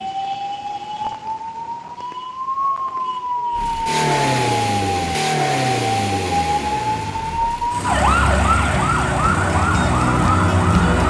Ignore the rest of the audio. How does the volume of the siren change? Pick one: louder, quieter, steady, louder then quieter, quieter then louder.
louder.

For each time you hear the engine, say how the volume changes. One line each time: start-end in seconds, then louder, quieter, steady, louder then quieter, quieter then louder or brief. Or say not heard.
3.5-11.0 quieter.